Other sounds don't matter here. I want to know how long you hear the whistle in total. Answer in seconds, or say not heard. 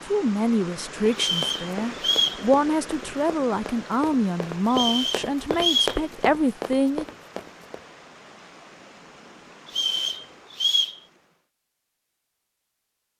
4 s.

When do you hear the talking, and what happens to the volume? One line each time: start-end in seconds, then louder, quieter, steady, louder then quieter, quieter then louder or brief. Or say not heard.
0.1-7.0 steady.